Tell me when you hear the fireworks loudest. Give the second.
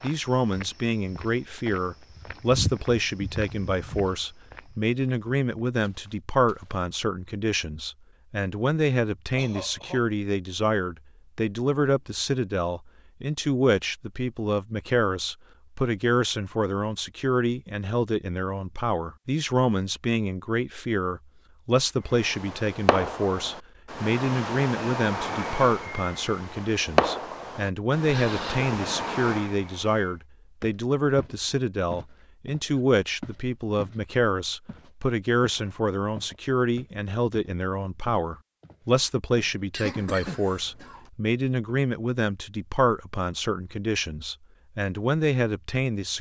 27 s.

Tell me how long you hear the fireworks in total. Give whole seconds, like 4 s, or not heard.
8 s.